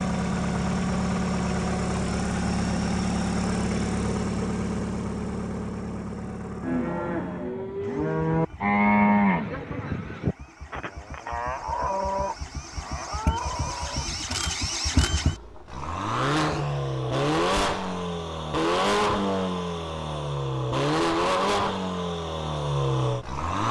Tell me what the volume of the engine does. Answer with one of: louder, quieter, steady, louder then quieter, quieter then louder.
quieter then louder.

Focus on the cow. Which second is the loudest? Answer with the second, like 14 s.
9 s.